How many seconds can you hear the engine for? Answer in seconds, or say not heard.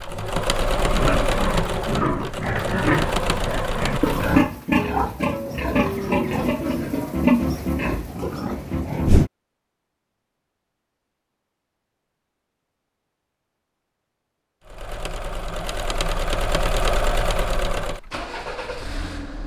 9 s.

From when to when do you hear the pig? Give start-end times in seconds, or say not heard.
0.8-9.3.